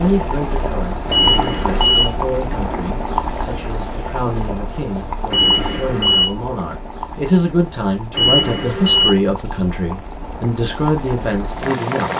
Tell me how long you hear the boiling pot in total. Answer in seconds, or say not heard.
12 s.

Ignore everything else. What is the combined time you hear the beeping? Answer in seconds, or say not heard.
3 s.